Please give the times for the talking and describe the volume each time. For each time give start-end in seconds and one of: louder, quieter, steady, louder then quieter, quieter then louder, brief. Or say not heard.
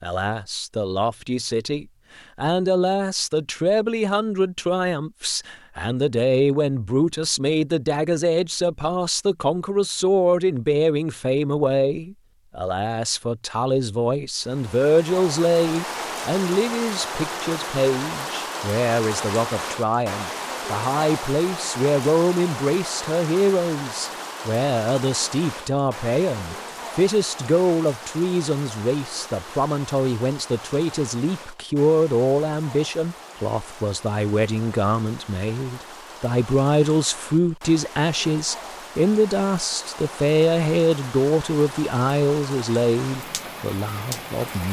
0.0-44.6 steady.